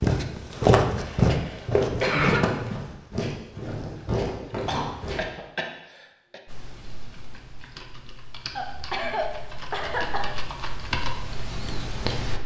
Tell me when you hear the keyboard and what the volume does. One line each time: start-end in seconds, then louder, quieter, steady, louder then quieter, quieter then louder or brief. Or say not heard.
6.5-12.4 louder.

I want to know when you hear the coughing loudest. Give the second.
2 s.